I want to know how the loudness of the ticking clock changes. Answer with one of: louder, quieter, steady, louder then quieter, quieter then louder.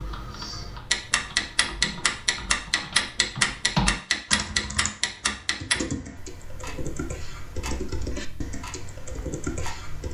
quieter.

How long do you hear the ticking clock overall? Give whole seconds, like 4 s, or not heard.
10 s.